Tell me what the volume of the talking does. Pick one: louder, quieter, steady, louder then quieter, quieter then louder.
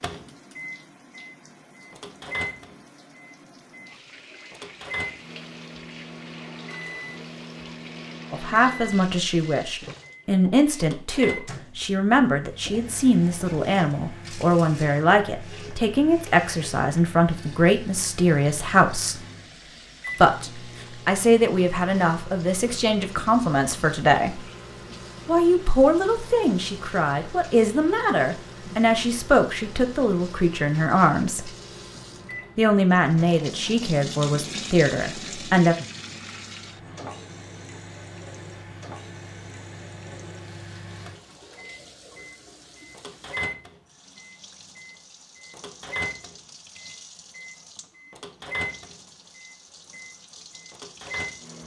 steady.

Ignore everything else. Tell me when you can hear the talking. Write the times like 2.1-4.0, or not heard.
8.3-19.2, 20.2-24.4, 25.2-31.5, 32.5-35.8.